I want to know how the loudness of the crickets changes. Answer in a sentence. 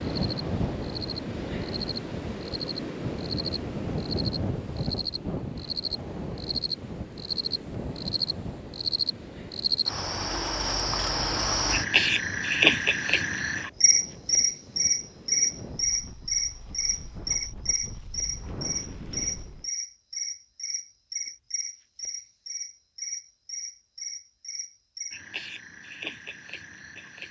The volume of the crickets goes up, then down.